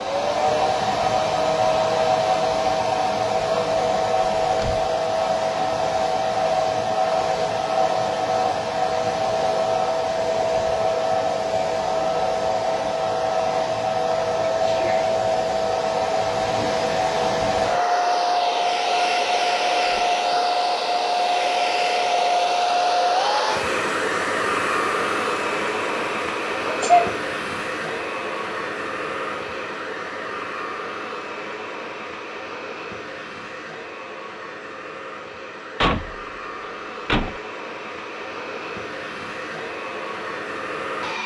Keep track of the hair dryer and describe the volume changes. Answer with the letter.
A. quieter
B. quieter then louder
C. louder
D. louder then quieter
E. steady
A.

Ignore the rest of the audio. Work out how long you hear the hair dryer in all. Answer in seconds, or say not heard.
41 s.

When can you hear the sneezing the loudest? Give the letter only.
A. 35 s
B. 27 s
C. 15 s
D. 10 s
B.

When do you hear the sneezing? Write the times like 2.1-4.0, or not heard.
14.3-15.1, 26.6-27.1.